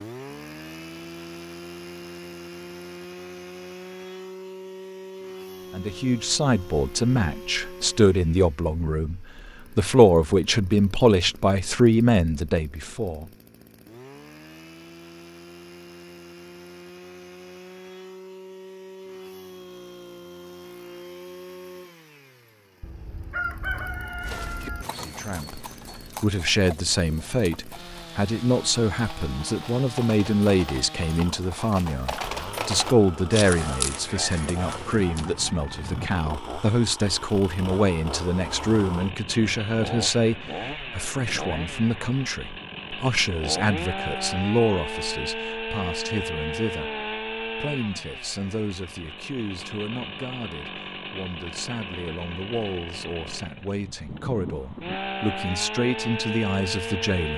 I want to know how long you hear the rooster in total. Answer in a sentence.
You can hear the rooster for 4 seconds altogether.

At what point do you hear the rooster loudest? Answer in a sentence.
The loudest moment of the rooster is at 24 seconds.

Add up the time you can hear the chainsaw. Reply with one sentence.
You can hear the chainsaw for 57 seconds altogether.